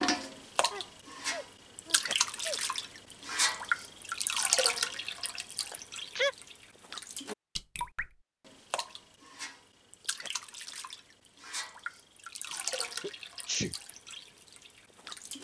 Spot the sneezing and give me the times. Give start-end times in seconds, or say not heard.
0.7-2.6, 5.7-6.3, 12.5-13.8.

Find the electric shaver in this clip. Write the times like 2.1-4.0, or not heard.
not heard.